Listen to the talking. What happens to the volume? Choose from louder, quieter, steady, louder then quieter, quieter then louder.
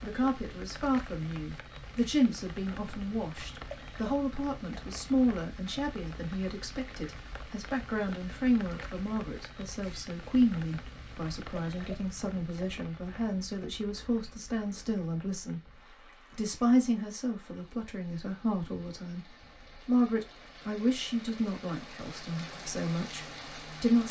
steady.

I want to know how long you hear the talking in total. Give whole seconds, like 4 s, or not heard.
23 s.